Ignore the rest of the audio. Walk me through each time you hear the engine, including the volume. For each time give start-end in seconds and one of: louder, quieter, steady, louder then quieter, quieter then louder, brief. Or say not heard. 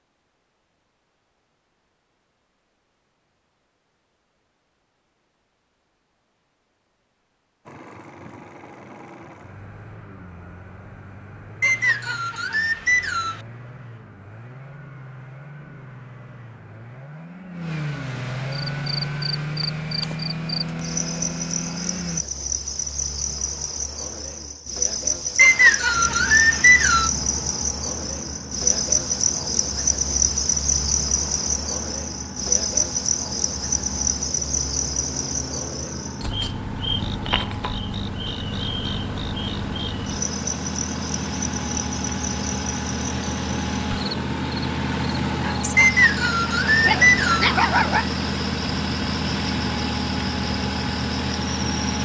7.7-22.2 louder
25.9-52.0 louder.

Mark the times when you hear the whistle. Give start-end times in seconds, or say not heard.
11.6-13.4, 25.4-27.1, 45.8-47.5.